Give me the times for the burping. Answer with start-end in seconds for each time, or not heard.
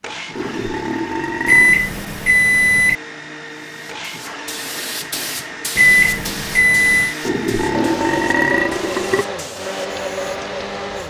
0.3-1.9, 7.2-9.2.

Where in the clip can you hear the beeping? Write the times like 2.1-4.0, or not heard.
1.4-3.0, 5.8-7.2.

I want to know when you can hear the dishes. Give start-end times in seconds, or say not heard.
not heard.